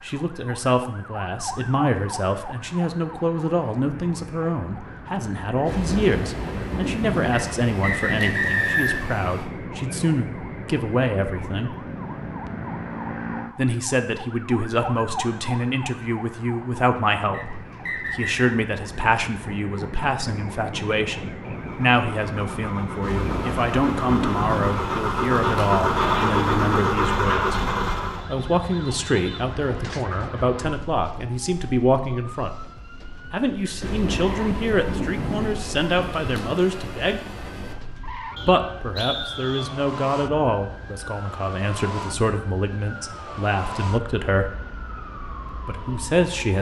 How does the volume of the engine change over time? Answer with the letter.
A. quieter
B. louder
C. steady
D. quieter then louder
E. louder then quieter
B.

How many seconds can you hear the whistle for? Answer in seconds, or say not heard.
4 s.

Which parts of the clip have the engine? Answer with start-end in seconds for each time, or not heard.
21.4-28.2.